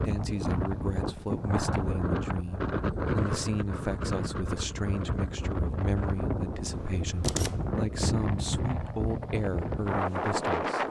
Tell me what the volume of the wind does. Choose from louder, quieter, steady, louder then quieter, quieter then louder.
steady.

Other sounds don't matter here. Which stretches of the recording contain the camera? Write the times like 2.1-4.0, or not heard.
6.7-7.8.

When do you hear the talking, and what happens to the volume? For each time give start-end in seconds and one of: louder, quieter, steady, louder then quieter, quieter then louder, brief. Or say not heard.
0.0-10.8 steady.